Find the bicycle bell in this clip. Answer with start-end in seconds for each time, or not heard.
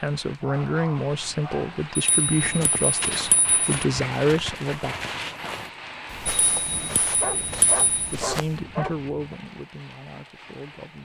1.9-3.8, 6.2-8.1.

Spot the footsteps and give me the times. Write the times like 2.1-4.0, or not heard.
2.4-8.7.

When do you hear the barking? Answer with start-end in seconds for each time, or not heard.
0.4-1.8, 7.2-9.1.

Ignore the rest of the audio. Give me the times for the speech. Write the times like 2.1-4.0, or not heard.
0.0-5.0, 7.3-10.9.